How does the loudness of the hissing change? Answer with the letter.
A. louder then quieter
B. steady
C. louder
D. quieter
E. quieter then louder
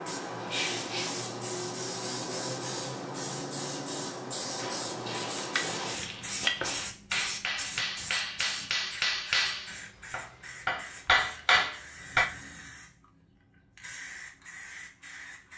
D.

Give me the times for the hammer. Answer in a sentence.
The hammer can be heard from 5.5 to 12.3 s.